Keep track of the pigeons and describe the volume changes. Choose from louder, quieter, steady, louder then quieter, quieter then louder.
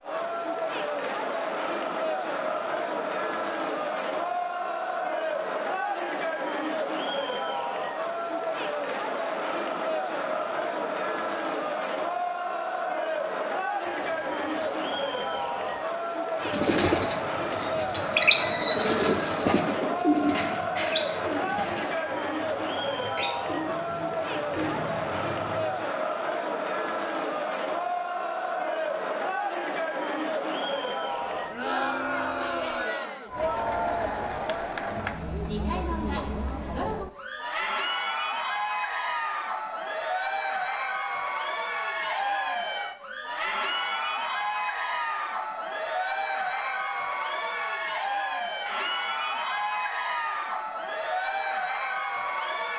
quieter.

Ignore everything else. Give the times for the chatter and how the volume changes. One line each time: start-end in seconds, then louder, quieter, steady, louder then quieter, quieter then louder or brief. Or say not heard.
0.0-52.7 steady.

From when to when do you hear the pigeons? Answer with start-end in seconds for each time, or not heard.
16.4-25.9.